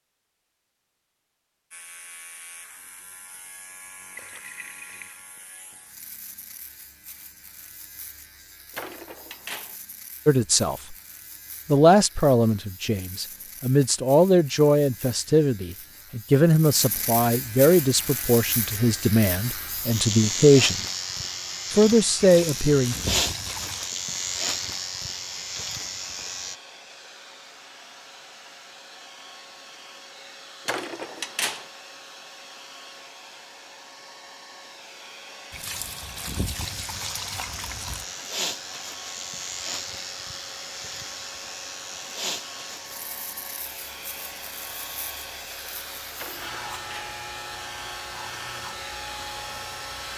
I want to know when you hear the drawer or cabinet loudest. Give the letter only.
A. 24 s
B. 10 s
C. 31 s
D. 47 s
C.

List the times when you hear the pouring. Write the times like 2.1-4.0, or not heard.
4.2-5.2, 22.2-23.9, 35.5-38.0.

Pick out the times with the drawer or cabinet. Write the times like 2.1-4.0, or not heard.
8.8-9.8, 30.6-31.6, 46.1-47.2.